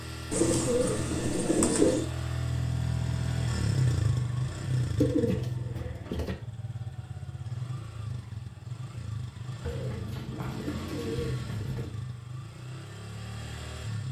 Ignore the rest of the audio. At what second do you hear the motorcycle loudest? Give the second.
4 s.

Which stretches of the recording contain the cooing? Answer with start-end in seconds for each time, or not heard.
0.3-2.0, 5.0-6.3, 9.6-11.9.